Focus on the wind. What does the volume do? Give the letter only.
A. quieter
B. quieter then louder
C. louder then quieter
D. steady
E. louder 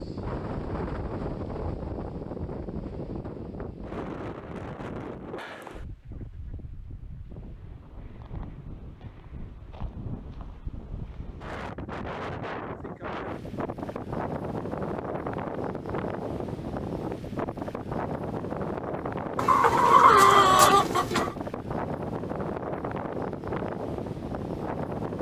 B.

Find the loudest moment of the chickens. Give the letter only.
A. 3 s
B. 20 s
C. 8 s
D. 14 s
B.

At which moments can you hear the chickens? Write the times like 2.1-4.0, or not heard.
19.4-21.4.